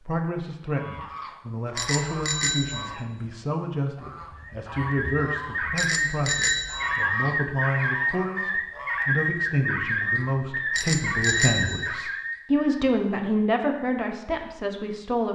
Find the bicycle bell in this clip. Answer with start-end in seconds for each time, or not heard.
1.8-3.0, 5.8-7.0, 10.7-11.9.